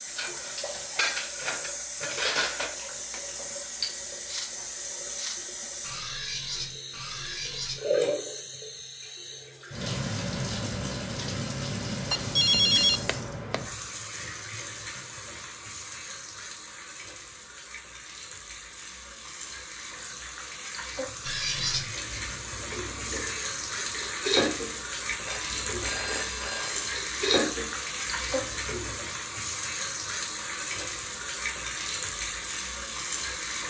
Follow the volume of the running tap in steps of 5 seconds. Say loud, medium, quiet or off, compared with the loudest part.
loud, loud, loud, medium, loud, loud, loud.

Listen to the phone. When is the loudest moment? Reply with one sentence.
The volume of the phone peaks at 13 seconds.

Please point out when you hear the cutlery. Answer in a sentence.
The cutlery can be heard from 0.1 to 7.8 s and from 21.2 to 28.9 s.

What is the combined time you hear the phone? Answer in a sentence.
You can hear the phone for 3 seconds altogether.